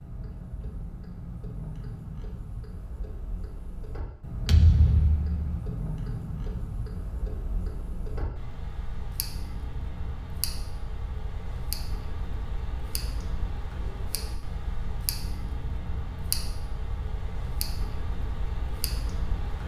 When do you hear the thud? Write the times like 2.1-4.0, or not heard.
4.5-5.7.